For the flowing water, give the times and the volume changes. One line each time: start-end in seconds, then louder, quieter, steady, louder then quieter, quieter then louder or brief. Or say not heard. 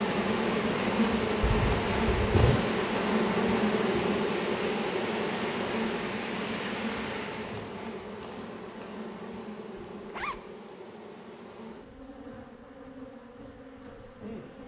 0.0-7.7 steady.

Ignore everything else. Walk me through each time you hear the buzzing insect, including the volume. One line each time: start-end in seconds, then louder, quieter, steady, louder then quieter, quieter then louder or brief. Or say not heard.
0.0-14.6 quieter.